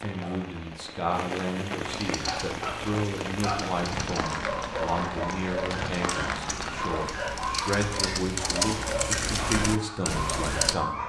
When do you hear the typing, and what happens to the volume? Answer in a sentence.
The typing can be heard from 1.9 to 10.8 s, getting louder.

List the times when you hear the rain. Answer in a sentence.
You can hear the rain from 0.0 to 7.1 s.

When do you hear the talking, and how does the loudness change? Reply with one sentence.
The talking can be heard from 0.0 to 11.0 s, at a steady volume.